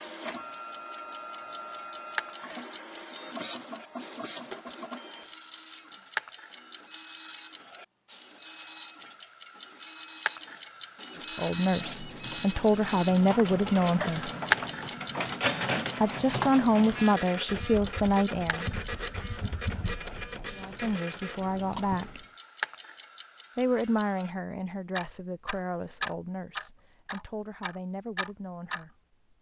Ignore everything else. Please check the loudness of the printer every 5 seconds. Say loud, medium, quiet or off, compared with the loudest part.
medium, medium, loud, loud, medium, off.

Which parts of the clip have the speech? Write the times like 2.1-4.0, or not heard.
11.2-14.3, 16.0-18.6, 20.5-22.2, 23.6-29.0.